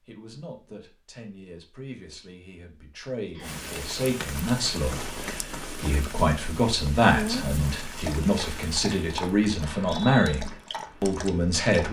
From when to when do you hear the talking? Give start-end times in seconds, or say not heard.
0.1-11.8.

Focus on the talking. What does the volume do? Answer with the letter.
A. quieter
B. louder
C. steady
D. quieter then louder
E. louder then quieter
B.